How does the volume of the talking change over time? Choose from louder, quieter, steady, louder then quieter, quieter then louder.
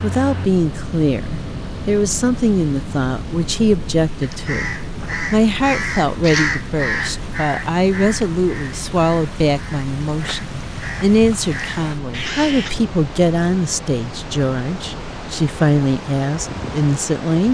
steady.